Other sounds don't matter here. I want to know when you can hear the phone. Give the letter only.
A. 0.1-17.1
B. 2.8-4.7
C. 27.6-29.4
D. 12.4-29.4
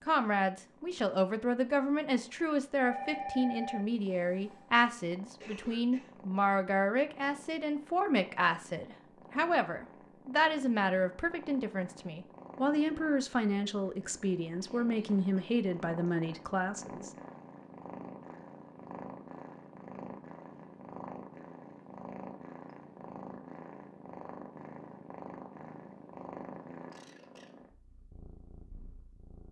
B.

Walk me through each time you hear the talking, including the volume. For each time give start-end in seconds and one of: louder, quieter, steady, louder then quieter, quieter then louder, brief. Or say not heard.
0.1-17.1 steady.